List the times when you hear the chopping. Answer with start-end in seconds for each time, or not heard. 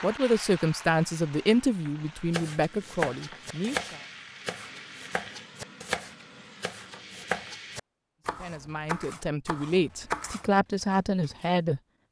2.3-11.0.